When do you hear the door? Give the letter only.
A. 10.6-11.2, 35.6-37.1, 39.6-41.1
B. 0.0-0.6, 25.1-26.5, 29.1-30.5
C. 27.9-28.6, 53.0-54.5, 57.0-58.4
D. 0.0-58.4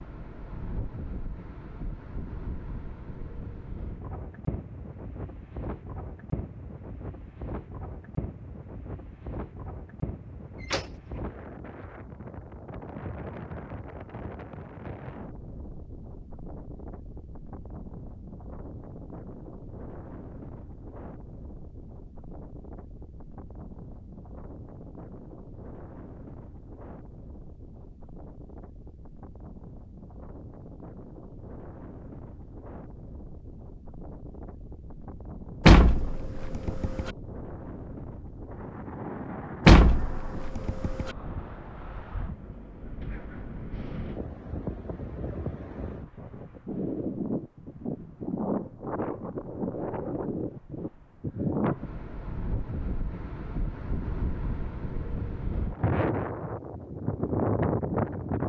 A.